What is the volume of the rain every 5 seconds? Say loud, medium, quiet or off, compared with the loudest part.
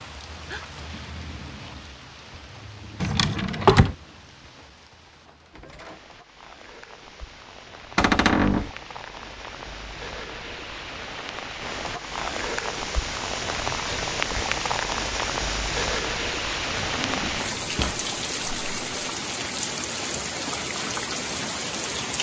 quiet, quiet, loud, loud, loud.